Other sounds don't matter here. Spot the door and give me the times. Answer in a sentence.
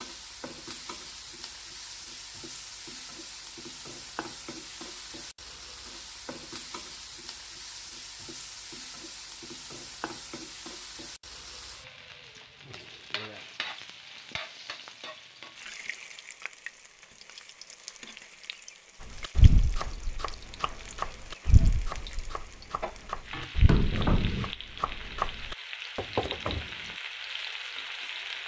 You can hear the door from 23.6 to 24.5 s.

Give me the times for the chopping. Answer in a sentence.
The chopping can be heard from 19.1 to 26.7 s.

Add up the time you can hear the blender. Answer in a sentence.
The blender can't be heard in this clip.